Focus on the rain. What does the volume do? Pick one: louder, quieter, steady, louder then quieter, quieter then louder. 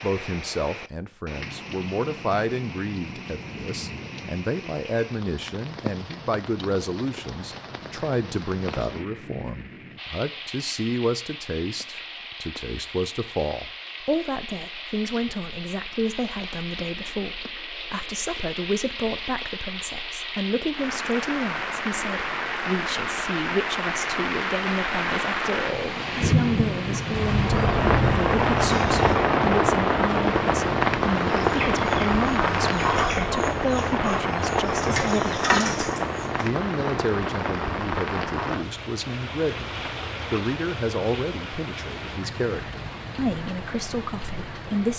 louder then quieter.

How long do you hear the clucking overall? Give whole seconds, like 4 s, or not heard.
5 s.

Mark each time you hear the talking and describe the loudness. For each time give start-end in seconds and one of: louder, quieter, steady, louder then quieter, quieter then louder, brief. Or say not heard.
0.0-44.9 steady.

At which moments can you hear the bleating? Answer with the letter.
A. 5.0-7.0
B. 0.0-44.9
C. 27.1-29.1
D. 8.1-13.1
C.